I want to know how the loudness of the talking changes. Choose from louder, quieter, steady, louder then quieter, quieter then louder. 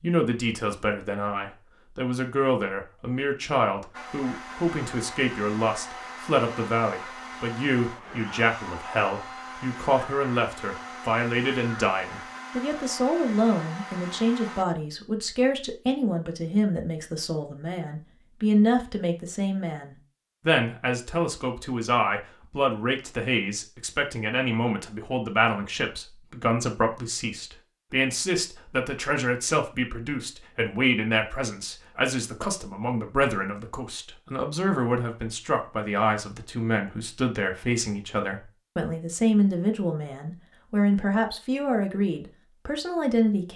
steady.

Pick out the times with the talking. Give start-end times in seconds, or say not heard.
0.0-43.5.